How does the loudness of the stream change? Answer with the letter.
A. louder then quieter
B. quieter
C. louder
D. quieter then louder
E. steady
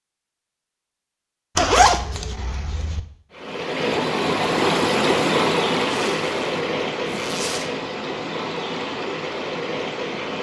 B.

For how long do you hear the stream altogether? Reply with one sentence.
You can hear the stream for 7 seconds altogether.